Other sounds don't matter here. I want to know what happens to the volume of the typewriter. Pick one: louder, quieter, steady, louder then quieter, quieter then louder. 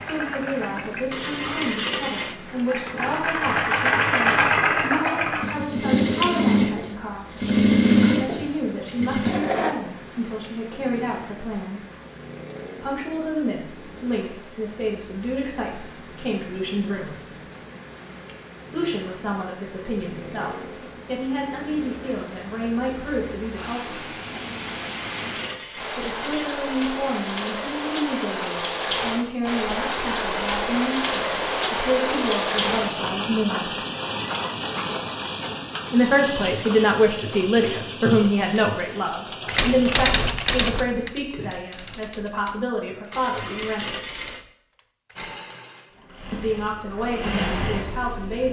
quieter.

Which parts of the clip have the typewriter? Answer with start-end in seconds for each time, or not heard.
39.5-45.4.